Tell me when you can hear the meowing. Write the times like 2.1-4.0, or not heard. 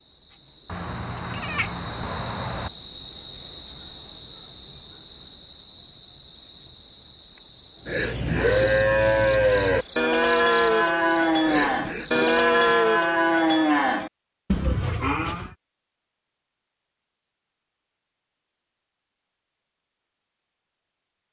0.7-2.7.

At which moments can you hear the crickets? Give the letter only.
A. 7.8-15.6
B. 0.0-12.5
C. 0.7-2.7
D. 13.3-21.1
B.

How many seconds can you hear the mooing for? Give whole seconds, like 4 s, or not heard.
8 s.